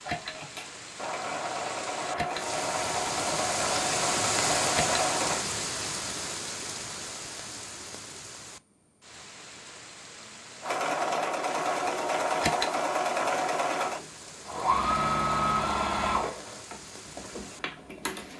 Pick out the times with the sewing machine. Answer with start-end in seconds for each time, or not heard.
0.0-5.5, 10.6-18.3.